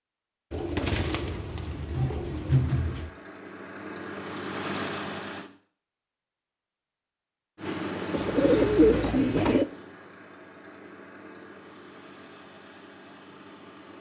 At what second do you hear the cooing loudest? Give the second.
9 s.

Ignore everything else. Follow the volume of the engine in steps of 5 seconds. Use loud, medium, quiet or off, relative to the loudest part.
loud, loud, quiet.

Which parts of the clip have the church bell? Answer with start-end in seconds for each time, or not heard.
not heard.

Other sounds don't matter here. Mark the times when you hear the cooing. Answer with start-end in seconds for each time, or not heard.
0.5-3.1, 8.1-9.7.